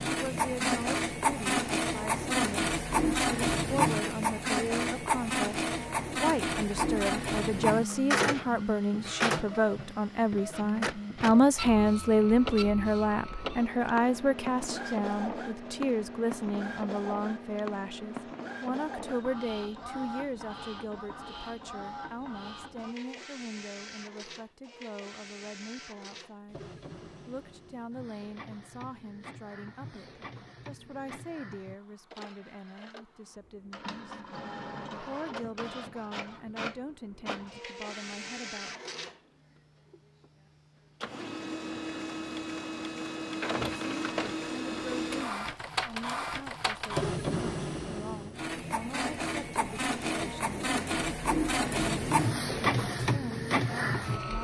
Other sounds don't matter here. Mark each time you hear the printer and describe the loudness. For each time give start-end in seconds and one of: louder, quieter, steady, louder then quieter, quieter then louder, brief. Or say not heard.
0.0-54.3 quieter then louder.